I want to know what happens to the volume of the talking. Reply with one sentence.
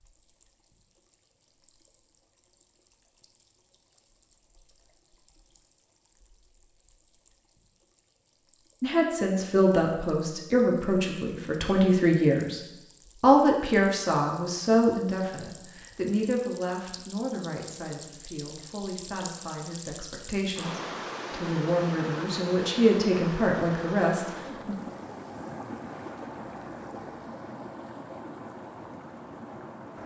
The volume of the talking goes down, then up.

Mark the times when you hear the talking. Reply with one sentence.
The talking can be heard from 8.8 to 12.6 s and from 13.2 to 24.8 s.